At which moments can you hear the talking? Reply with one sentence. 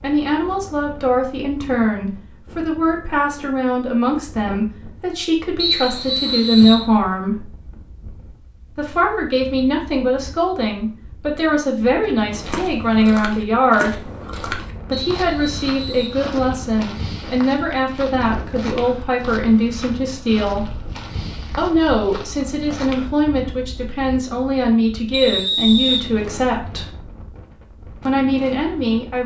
You can hear the talking from 0.0 to 7.5 s, from 8.8 to 13.9 s, from 14.8 to 20.7 s, from 21.6 to 26.9 s and from 28.1 to 29.2 s.